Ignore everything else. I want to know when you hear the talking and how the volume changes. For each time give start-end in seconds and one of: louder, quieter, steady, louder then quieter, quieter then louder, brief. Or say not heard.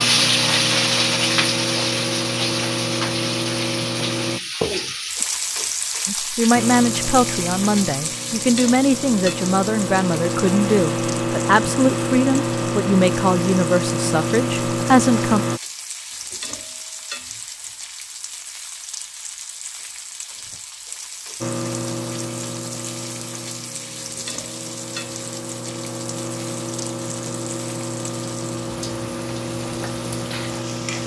6.0-15.4 steady.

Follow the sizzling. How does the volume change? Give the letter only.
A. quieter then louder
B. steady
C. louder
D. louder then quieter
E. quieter
E.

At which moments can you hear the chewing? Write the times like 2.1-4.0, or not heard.
not heard.